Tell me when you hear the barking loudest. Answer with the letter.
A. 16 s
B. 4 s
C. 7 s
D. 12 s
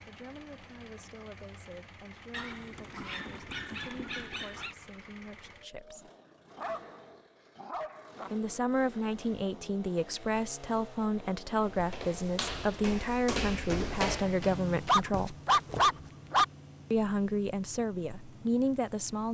A.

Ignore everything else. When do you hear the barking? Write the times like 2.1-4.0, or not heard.
2.3-4.8, 6.5-8.3, 14.8-16.4.